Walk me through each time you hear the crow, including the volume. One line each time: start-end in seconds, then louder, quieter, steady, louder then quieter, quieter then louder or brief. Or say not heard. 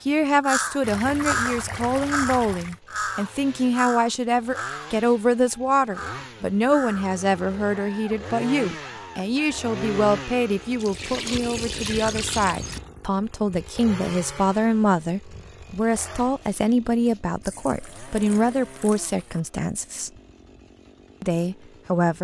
0.4-9.6 quieter.